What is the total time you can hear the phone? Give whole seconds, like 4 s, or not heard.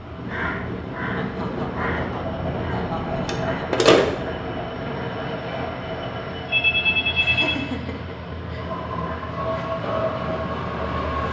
2 s.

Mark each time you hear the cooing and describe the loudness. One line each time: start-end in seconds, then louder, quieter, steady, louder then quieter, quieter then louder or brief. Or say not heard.
not heard.